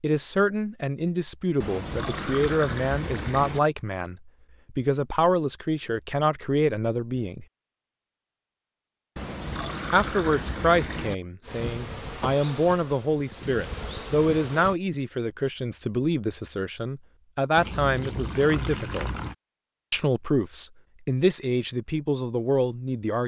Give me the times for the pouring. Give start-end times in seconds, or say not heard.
1.6-3.6, 9.2-11.2, 17.6-19.4.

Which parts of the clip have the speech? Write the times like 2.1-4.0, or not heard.
0.0-7.5, 9.9-19.1, 19.9-23.2.